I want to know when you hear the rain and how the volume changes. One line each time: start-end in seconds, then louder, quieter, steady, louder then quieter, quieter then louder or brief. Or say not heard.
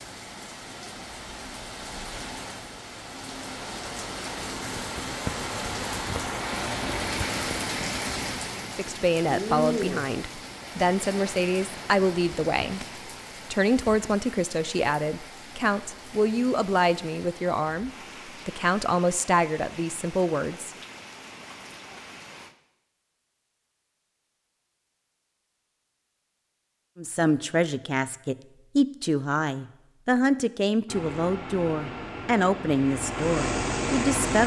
0.0-22.6 louder then quieter.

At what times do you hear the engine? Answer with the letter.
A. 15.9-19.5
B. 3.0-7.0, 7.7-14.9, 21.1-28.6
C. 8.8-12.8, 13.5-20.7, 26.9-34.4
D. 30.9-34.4
D.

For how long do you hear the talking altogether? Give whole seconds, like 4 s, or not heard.
19 s.